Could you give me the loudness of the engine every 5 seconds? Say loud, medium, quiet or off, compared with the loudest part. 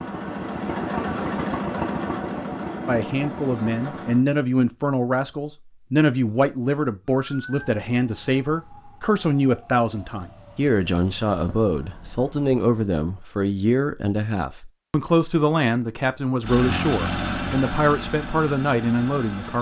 loud, off, off, loud.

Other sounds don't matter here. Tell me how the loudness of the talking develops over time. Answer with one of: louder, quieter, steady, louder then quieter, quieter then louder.
steady.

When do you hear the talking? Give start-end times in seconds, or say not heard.
2.9-19.5.